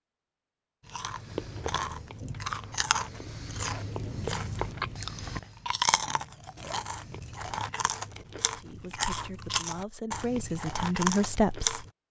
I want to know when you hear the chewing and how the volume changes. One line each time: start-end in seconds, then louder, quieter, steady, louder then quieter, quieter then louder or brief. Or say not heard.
0.8-11.9 steady.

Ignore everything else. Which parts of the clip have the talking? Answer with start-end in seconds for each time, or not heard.
8.5-11.8.